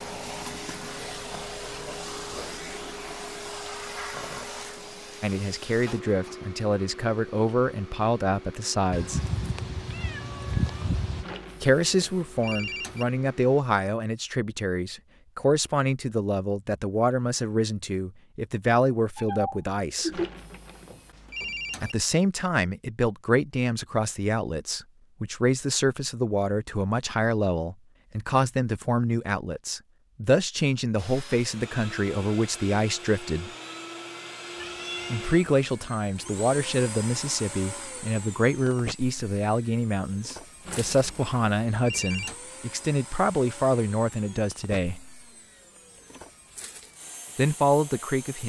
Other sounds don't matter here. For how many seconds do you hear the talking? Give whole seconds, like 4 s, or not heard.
35 s.